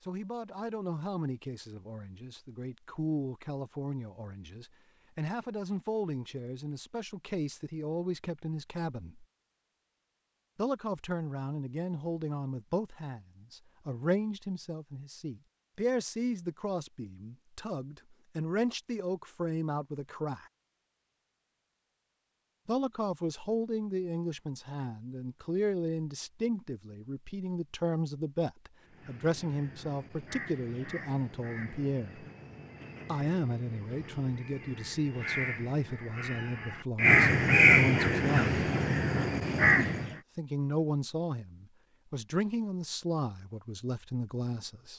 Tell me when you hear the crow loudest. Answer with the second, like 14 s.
38 s.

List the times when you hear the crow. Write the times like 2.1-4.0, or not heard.
28.9-40.1.